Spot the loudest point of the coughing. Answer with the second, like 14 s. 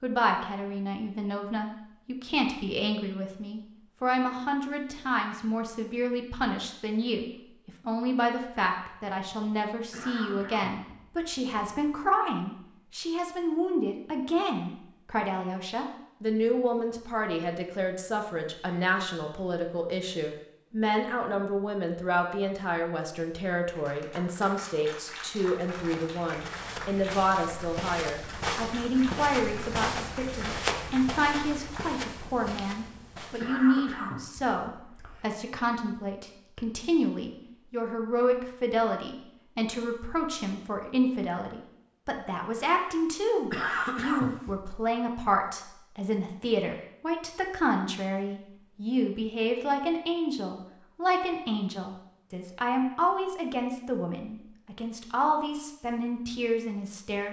44 s.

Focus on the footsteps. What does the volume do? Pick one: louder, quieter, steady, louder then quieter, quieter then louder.
louder then quieter.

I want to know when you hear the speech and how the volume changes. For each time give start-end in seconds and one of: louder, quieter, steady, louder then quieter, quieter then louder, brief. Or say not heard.
0.0-57.2 steady.